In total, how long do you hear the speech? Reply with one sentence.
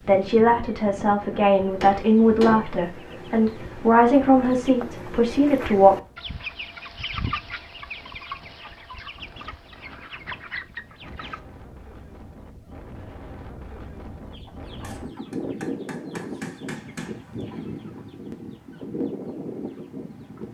You can hear the speech for 6 seconds altogether.